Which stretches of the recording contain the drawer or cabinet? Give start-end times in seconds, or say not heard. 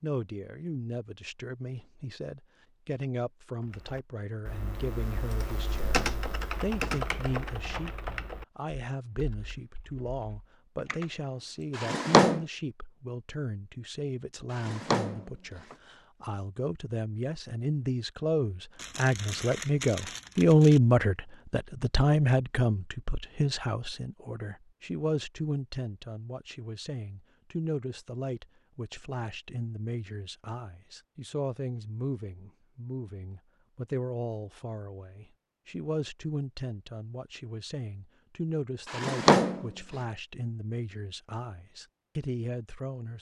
11.8-12.4, 14.5-15.8, 38.9-39.7.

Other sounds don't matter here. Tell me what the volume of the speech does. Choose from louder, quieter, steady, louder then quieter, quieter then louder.
louder then quieter.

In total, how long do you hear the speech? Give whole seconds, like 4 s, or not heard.
43 s.